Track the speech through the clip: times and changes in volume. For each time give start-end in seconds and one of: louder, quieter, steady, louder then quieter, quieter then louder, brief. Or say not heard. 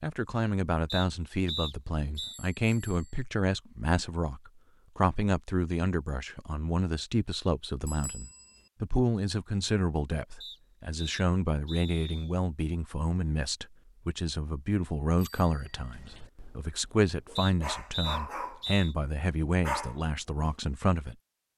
0.0-21.5 steady.